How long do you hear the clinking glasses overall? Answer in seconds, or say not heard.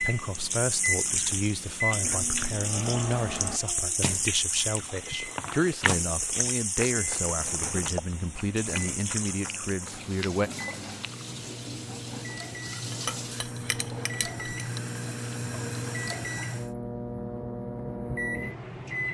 2 s.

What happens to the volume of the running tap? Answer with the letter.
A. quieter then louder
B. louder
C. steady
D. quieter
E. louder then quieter
D.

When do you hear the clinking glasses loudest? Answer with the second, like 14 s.
13 s.